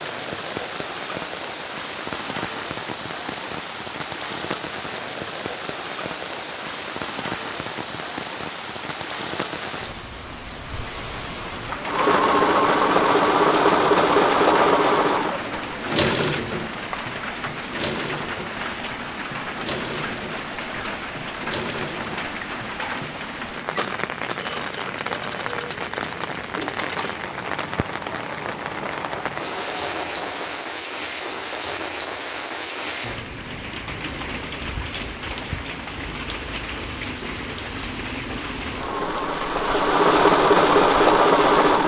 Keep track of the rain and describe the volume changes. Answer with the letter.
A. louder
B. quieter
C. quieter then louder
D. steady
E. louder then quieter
D.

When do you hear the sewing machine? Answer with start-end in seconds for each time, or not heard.
11.8-30.6, 38.7-41.8.